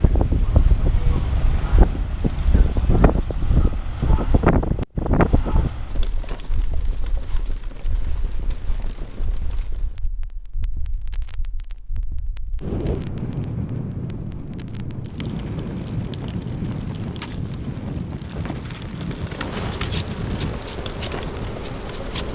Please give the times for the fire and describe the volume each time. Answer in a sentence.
The fire can be heard from 5.8 to 22.3 s, getting quieter then louder.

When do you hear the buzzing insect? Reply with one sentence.
You can hear the buzzing insect from 19.2 to 22.3 s.